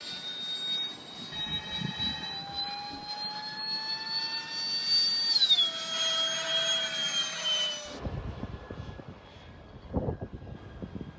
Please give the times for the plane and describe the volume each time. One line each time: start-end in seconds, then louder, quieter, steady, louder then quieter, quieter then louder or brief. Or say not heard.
0.0-11.1 louder then quieter.